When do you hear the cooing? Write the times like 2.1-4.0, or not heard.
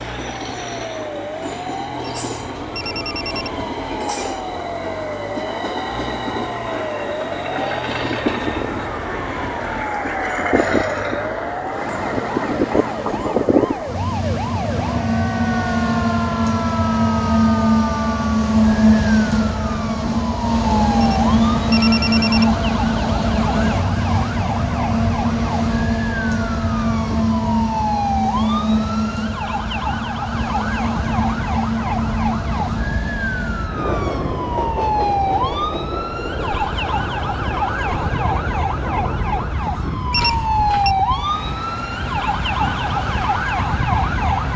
not heard.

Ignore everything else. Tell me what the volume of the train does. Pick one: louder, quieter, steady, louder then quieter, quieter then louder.
louder then quieter.